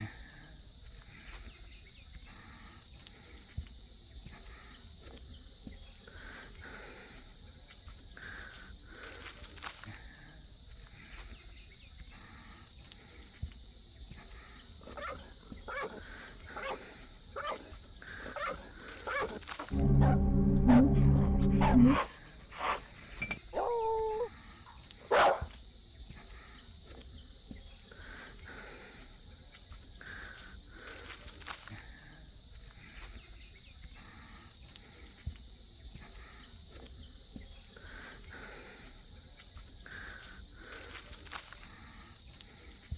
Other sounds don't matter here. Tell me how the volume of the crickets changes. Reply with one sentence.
The volume of the crickets stays about the same.